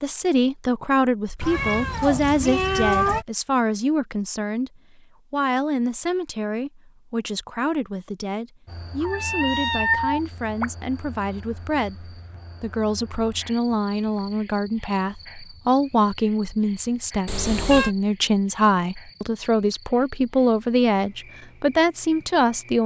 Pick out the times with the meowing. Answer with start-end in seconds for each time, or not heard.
1.4-3.2, 9.0-10.7, 17.2-17.9.